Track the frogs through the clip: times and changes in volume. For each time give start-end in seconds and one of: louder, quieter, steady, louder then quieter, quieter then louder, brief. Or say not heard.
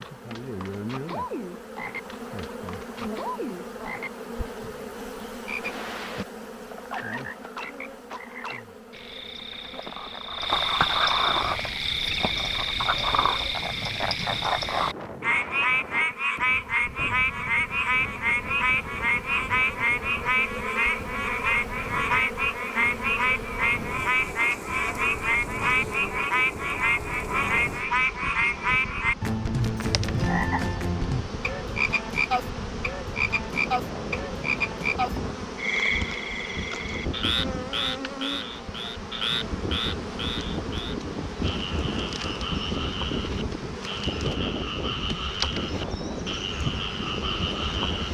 0.0-48.0 louder then quieter.